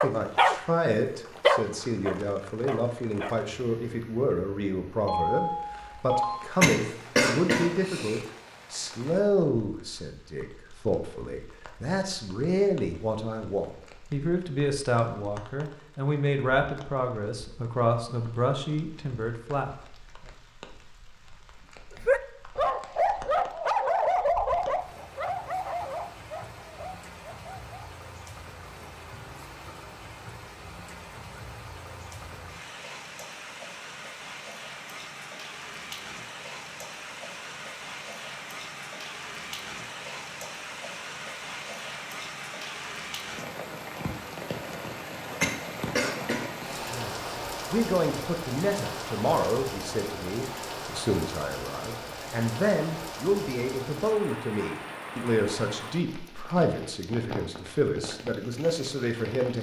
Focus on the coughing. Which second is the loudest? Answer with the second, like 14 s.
7 s.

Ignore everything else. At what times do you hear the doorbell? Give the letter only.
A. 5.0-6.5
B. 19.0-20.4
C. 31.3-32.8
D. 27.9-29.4
A.